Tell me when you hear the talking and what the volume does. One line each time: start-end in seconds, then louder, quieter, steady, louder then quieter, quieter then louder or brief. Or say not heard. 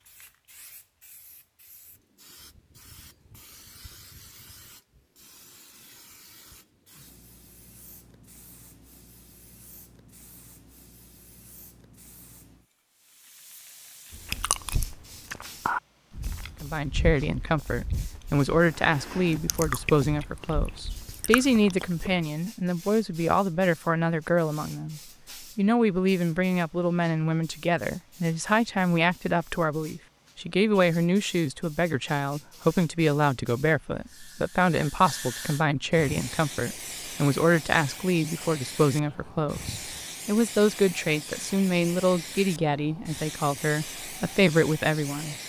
16.6-45.4 steady.